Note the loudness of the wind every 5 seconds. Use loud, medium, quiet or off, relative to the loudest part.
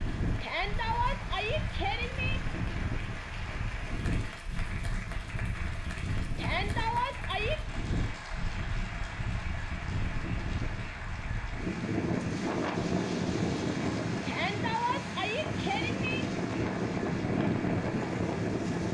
medium, medium, loud, loud.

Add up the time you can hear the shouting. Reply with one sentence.
The shouting can be heard for 5 seconds in total.